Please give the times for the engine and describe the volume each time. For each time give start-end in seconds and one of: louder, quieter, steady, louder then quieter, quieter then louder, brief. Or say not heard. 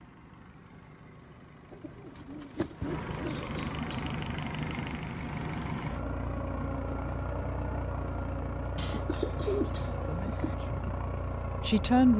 0.0-12.1 louder.